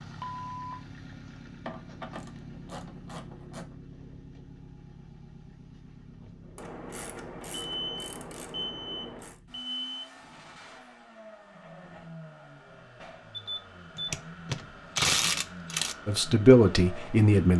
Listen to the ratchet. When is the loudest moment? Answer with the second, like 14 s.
15 s.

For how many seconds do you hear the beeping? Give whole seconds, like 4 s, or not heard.
5 s.